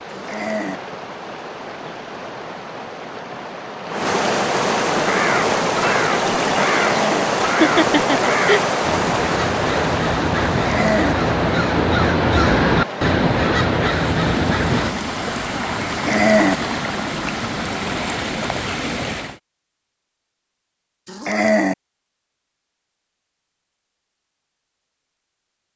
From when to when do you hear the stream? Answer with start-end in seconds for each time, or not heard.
0.0-19.4.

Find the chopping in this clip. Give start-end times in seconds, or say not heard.
not heard.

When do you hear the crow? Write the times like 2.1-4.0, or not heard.
5.0-14.9.